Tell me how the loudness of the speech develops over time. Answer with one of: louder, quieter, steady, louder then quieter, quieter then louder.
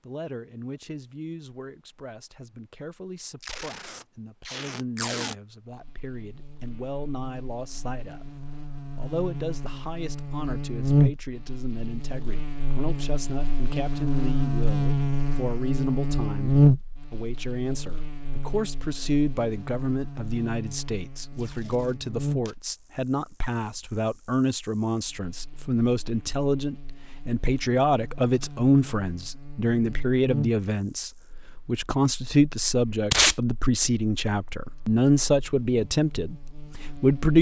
louder.